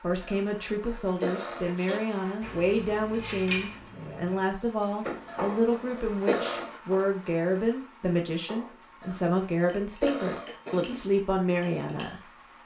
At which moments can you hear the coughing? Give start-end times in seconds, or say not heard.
0.2-1.8, 5.2-6.8, 9.0-11.0.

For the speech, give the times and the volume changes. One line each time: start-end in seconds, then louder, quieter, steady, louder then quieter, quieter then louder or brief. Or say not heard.
0.0-12.6 steady.